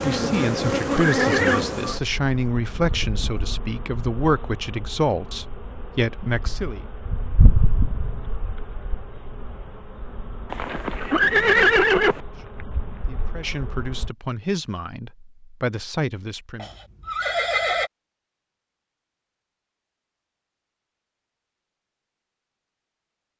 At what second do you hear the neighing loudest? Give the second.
12 s.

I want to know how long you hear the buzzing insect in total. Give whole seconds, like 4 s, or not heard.
14 s.